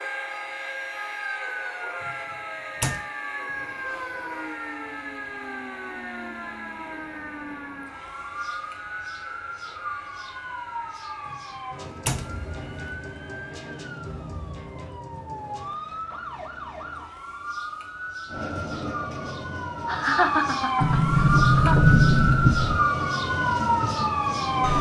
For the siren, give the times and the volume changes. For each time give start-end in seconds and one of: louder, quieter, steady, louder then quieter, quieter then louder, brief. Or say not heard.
0.0-24.7 louder.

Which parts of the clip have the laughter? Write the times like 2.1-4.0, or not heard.
19.9-21.8.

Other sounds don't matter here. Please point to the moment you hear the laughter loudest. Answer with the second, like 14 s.
20 s.